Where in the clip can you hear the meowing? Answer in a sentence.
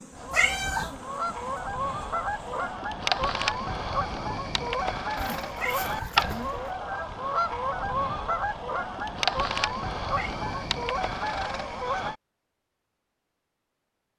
You can hear the meowing from 0.3 to 0.9 s, from 5.5 to 6.2 s and from 10.1 to 10.6 s.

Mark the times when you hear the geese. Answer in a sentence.
You can hear the geese from 0.1 to 12.2 s.